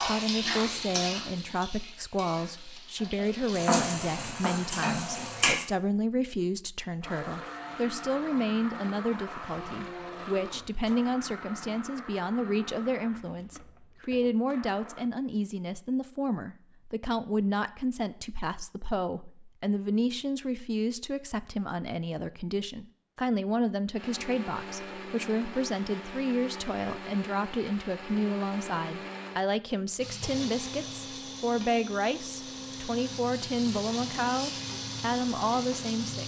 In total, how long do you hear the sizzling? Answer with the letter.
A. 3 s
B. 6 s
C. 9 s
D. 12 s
D.